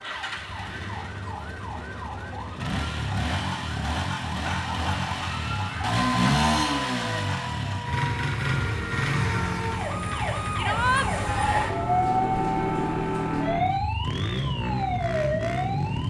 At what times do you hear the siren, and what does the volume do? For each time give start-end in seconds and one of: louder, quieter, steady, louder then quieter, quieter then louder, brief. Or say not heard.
0.0-16.0 louder.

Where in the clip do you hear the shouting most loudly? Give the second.
11 s.